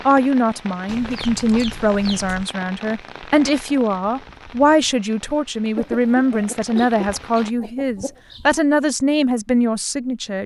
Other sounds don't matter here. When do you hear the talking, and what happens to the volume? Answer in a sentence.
The talking can be heard from 0.1 to 10.4 s, at a steady volume.